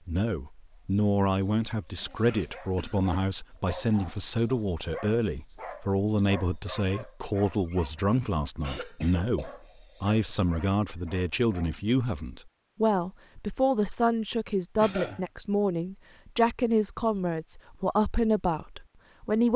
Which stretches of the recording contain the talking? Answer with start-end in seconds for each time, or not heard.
0.1-19.5.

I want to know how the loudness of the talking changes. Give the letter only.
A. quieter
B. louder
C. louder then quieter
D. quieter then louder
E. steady
E.